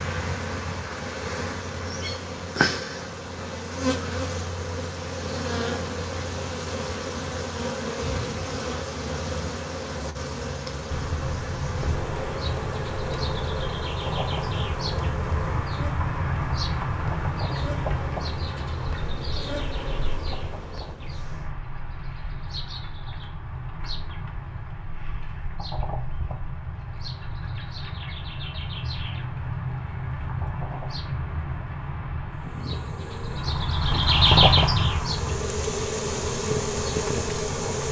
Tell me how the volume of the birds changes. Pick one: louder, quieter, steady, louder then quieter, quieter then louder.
quieter then louder.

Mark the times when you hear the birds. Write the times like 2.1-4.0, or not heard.
10.9-37.8.